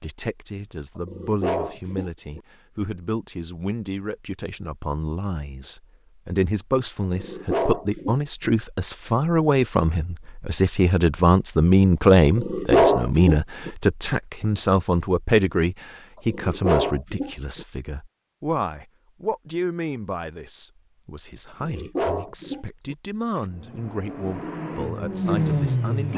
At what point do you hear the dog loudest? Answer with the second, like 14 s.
13 s.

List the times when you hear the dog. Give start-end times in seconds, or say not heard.
1.1-2.4, 7.2-8.5, 12.3-13.7, 16.3-17.6, 21.6-23.4.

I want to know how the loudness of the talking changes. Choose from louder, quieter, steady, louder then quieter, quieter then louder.
louder then quieter.